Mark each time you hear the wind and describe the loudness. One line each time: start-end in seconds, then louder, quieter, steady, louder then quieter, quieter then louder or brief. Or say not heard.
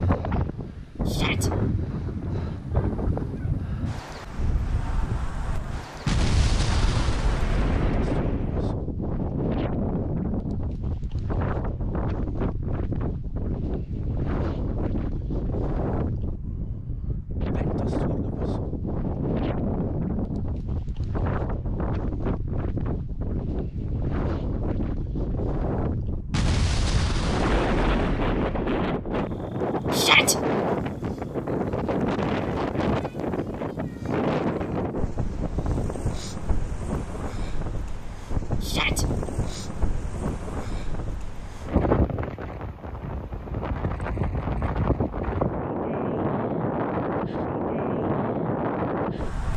0.0-49.5 steady.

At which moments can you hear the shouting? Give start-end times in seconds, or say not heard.
1.1-1.5, 29.9-30.4, 38.6-39.0.